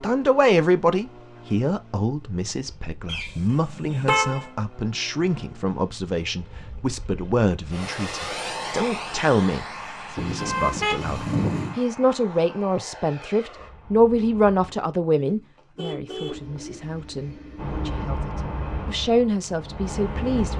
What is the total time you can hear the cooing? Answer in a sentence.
The cooing can be heard for 2 seconds in total.